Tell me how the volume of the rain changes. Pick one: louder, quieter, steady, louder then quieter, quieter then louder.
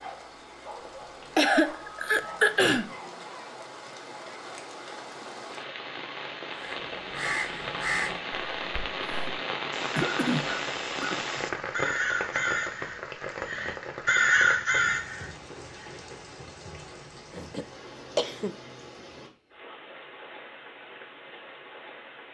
louder then quieter.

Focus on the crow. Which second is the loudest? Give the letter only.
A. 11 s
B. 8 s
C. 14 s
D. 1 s
C.